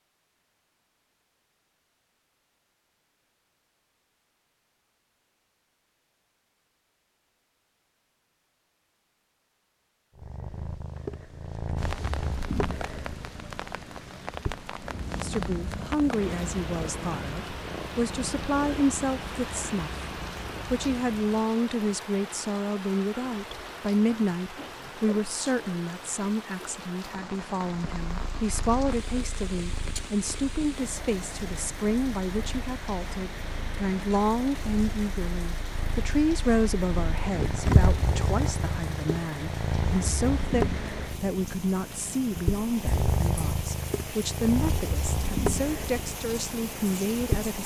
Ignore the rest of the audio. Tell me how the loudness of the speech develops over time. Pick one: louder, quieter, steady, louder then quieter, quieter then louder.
steady.